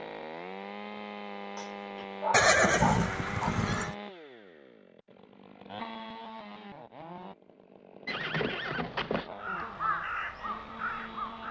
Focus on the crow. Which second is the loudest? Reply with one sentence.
The loudest moment of the crow is at 10 seconds.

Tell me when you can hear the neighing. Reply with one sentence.
You can hear the neighing from 2.3 to 4.0 s and from 8.1 to 9.3 s.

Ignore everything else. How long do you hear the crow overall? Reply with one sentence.
You can hear the crow for 2 seconds altogether.